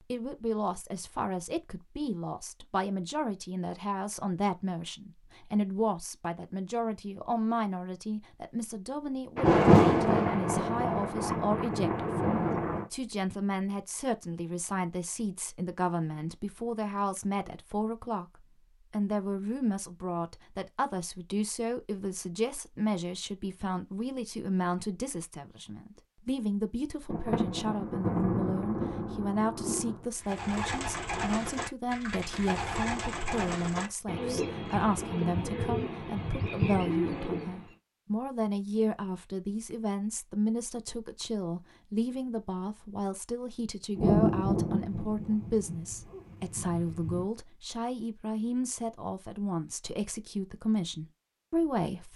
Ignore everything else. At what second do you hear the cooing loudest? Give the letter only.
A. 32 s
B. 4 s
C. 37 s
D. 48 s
C.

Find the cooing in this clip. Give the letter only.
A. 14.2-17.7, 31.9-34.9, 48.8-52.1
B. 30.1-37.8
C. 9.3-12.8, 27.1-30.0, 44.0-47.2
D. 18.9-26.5
B.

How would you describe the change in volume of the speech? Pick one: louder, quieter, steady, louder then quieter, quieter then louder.
steady.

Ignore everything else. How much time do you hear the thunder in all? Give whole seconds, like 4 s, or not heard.
10 s.